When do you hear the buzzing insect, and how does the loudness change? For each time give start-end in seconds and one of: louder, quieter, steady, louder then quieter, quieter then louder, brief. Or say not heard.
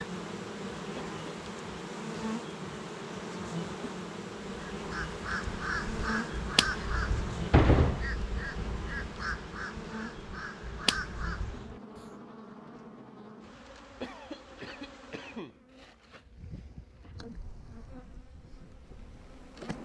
0.0-19.7 quieter.